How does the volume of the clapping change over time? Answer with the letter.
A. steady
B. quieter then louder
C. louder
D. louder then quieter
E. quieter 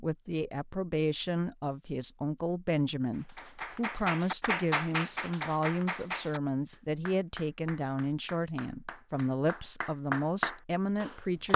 B.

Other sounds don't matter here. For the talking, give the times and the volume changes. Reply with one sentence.
You can hear the talking from 0.0 to 11.5 s, at a steady volume.